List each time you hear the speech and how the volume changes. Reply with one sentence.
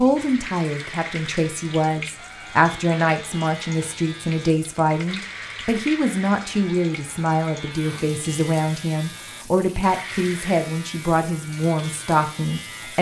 The speech can be heard from 0.0 to 12.9 s, at a steady volume.